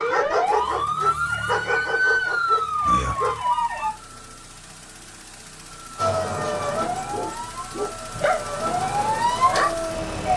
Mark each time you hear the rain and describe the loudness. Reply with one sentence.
The rain can't be heard in this clip.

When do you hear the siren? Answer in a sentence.
The siren can be heard from 0.0 to 3.9 s and from 6.0 to 10.3 s.